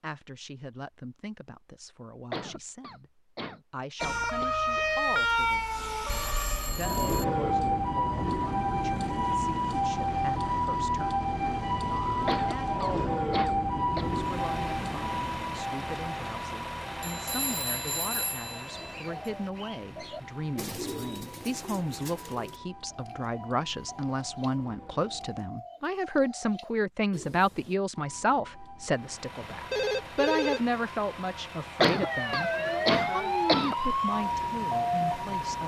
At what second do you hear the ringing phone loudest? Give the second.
30 s.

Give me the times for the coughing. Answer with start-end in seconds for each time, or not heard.
2.3-4.6, 12.2-14.1, 31.8-33.8.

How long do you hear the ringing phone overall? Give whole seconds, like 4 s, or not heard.
4 s.